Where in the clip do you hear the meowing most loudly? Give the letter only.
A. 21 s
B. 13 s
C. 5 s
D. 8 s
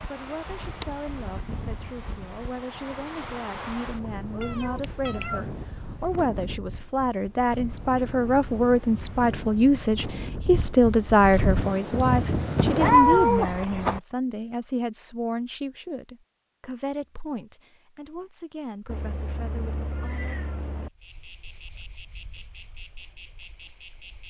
B.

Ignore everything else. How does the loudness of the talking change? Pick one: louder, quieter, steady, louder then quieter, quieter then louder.
louder then quieter.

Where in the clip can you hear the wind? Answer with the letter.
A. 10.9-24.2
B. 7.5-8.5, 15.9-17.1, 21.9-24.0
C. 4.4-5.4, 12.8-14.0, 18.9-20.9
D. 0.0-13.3
D.